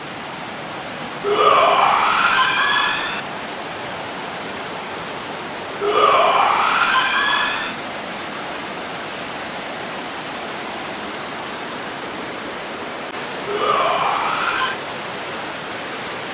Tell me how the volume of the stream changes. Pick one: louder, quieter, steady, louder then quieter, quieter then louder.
steady.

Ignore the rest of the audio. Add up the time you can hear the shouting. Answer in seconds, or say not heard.
5 s.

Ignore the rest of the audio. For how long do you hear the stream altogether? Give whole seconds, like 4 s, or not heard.
16 s.